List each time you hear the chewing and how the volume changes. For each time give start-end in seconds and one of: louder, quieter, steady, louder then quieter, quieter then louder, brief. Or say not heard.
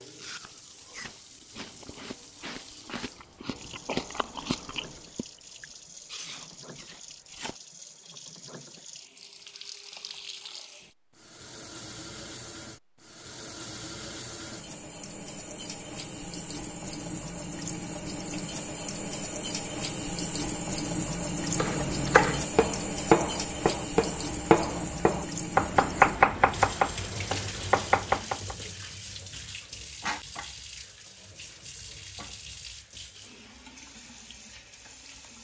0.1-7.5 louder then quieter.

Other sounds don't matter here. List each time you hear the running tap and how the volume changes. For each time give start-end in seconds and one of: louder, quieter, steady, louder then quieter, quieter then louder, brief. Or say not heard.
0.0-35.3 louder then quieter.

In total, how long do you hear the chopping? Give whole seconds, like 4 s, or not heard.
7 s.